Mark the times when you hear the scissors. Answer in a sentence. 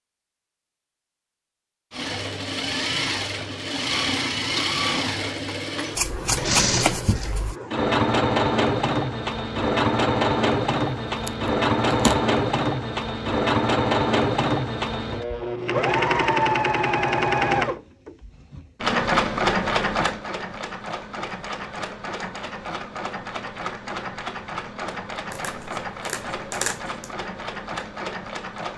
You can hear the scissors from 6.0 to 7.5 s, from 11.2 to 12.2 s and from 25.3 to 27.1 s.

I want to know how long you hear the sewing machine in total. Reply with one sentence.
The sewing machine can be heard for 27 seconds in total.